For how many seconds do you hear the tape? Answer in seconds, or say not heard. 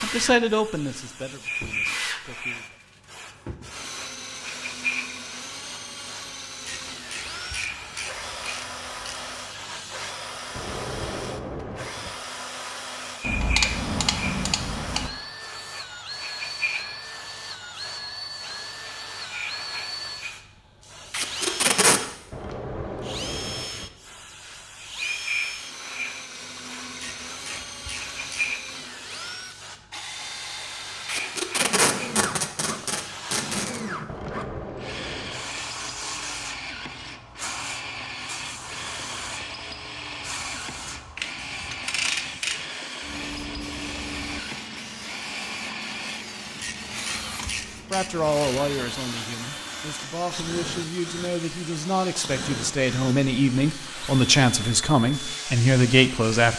4 s.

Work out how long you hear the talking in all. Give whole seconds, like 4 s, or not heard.
11 s.